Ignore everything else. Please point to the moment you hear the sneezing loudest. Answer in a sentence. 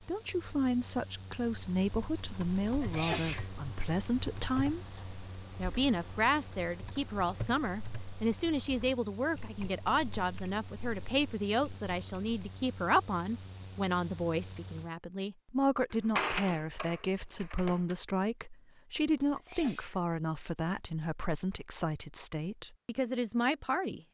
The loudest moment of the sneezing is at 3 seconds.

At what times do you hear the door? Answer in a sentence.
The door can be heard from 15.9 to 17.9 s.